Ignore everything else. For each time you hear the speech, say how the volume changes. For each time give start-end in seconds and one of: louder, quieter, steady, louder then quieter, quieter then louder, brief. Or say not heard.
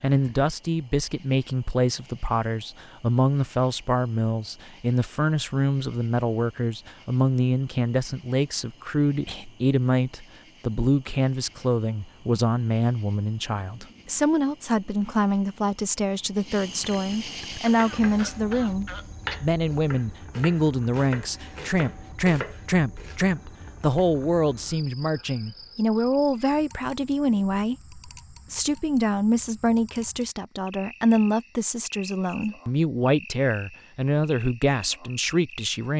0.0-35.9 steady.